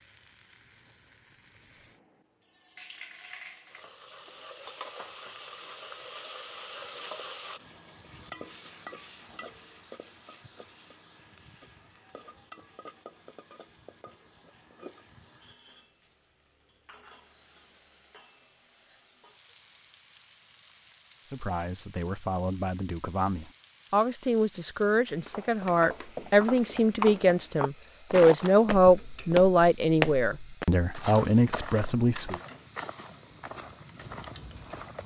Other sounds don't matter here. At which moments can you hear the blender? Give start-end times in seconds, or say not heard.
not heard.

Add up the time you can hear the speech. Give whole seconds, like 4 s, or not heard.
11 s.